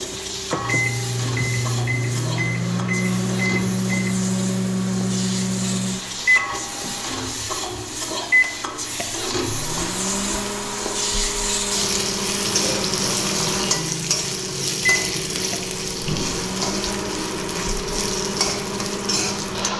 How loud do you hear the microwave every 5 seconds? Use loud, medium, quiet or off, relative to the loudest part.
loud, loud, medium, medium.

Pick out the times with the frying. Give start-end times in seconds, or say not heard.
0.0-19.7.